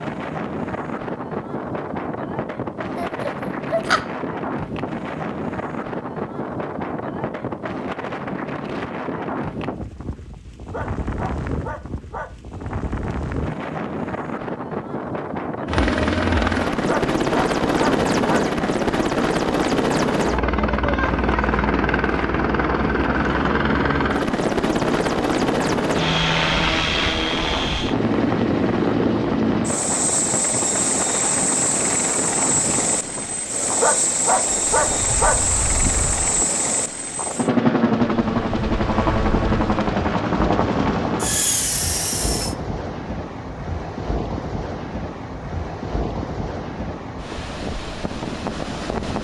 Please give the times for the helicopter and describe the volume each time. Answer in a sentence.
You can hear the helicopter from 15.7 to 42.5 s, at a steady volume.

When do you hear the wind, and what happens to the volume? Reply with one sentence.
You can hear the wind from 0.0 to 49.1 s, at a steady volume.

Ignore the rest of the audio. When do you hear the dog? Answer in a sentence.
The dog can be heard from 10.7 to 12.3 s, from 16.9 to 18.4 s and from 33.8 to 35.4 s.